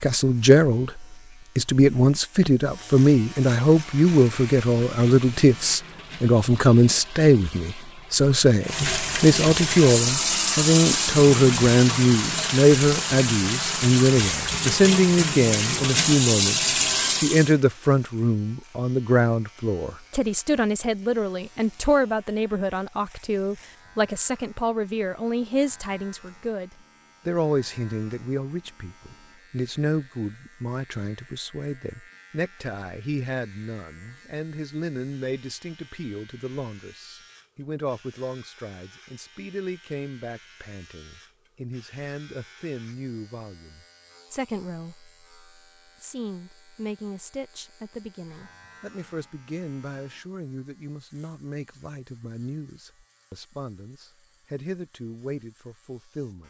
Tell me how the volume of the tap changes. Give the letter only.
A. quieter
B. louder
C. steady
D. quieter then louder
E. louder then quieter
B.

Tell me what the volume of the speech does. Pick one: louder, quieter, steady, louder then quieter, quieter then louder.
quieter.